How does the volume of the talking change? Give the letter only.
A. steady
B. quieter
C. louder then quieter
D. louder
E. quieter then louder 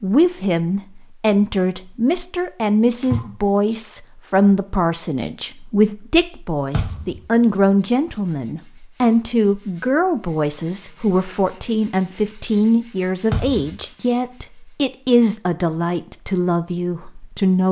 A.